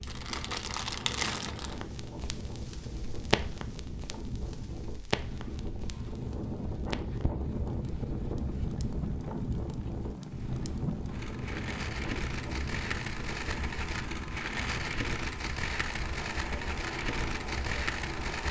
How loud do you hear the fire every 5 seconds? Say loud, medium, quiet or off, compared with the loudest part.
loud, medium, loud, loud.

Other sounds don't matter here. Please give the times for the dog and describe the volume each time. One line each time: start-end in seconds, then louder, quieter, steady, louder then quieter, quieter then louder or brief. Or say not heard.
not heard.